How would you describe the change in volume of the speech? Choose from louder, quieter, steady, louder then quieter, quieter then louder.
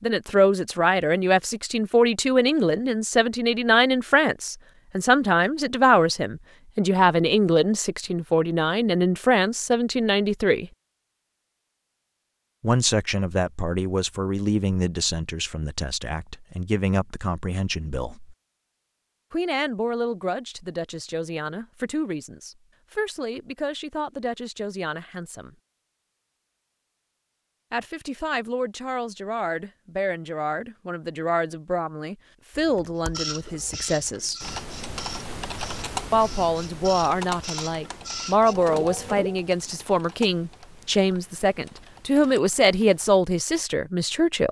quieter then louder.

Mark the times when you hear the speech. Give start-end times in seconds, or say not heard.
0.0-10.7, 12.6-18.4, 19.3-25.6, 27.7-34.4, 36.1-44.4.